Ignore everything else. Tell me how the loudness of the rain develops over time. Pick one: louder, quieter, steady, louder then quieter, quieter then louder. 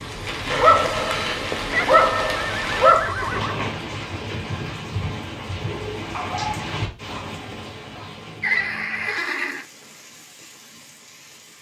quieter.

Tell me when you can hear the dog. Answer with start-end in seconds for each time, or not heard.
0.5-3.1, 6.1-8.1.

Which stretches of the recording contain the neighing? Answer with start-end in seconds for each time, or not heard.
1.7-3.8, 8.4-9.7.